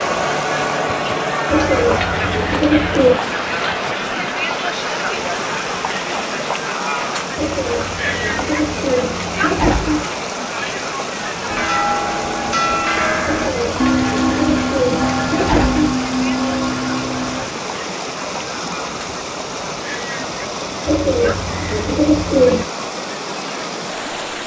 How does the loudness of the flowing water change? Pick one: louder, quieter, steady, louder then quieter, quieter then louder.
steady.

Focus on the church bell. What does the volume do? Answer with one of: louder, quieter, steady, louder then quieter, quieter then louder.
steady.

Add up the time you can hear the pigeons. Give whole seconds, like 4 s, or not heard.
9 s.